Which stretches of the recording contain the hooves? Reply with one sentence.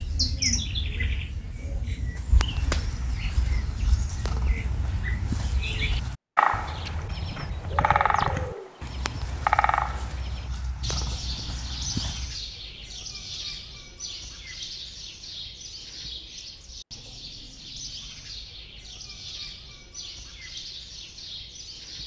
The hooves can be heard from 2.1 to 12.4 s.